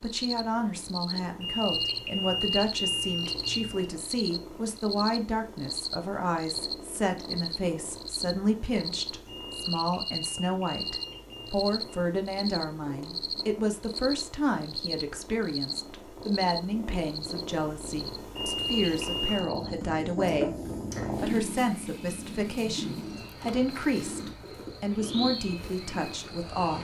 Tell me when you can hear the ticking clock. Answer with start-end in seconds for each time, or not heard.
not heard.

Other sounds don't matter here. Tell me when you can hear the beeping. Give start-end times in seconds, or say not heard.
1.4-3.9, 9.2-12.0, 18.4-19.5.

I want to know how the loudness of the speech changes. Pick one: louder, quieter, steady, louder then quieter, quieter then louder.
steady.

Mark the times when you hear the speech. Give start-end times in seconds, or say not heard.
0.0-26.7.